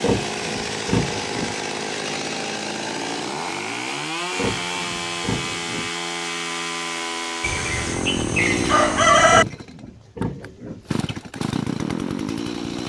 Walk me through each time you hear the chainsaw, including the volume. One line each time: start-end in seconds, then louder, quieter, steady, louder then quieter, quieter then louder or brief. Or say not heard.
0.0-12.8 steady.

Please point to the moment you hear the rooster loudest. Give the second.
9 s.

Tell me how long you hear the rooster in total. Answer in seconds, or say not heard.
2 s.